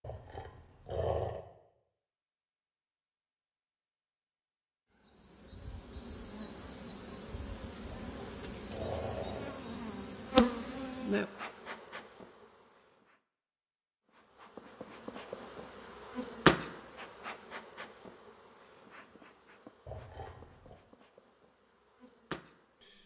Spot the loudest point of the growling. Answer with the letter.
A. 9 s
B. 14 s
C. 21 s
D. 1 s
D.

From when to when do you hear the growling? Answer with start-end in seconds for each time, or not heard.
0.0-1.4, 7.8-9.6, 19.9-20.8.